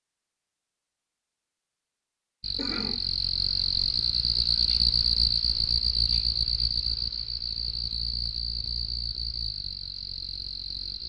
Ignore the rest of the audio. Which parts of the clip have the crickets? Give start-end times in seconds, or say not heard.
2.4-11.0.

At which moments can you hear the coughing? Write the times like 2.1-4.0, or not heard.
2.5-3.0.